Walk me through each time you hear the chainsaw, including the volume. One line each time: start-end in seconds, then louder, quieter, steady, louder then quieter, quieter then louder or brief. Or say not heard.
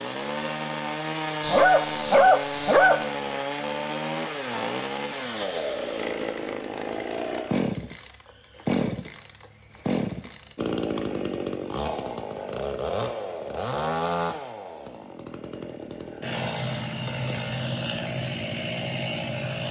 0.0-19.6 steady.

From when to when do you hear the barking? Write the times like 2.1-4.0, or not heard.
1.4-3.0.